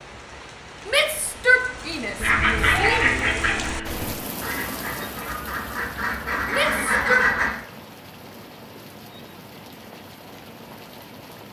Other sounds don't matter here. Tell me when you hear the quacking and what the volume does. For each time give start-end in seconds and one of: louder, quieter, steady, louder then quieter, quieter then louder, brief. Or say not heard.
2.2-7.5 quieter then louder.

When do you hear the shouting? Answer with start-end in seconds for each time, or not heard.
0.8-3.1, 6.5-7.2.